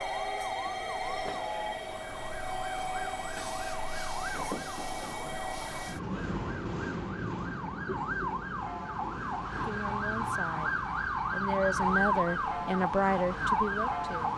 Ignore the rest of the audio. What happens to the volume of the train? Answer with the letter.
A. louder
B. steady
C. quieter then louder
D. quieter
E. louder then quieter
D.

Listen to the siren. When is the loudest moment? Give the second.
12 s.